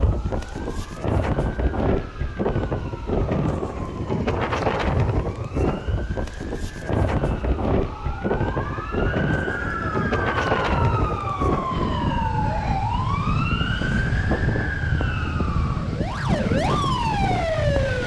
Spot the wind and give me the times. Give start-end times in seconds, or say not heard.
0.0-18.0.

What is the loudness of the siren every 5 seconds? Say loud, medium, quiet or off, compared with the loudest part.
quiet, medium, loud, loud.